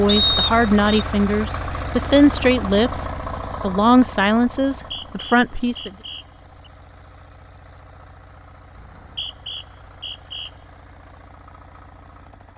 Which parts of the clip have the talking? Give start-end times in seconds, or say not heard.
0.0-5.9.